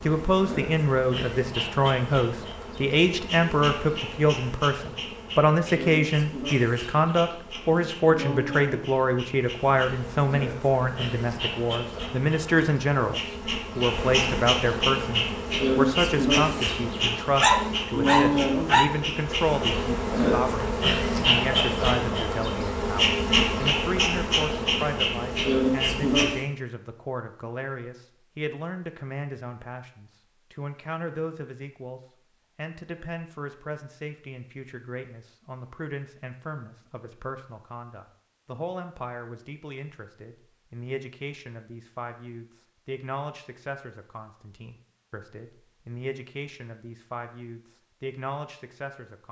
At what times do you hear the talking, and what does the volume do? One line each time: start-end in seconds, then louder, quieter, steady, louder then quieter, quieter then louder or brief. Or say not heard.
0.1-49.2 quieter.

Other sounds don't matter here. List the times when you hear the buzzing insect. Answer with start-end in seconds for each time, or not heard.
0.0-26.4.